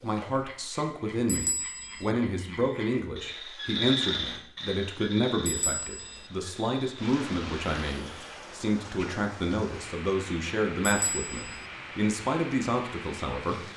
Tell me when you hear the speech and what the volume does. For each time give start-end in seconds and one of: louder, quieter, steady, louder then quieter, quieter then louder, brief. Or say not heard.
0.0-13.6 steady.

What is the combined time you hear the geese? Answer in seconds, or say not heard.
not heard.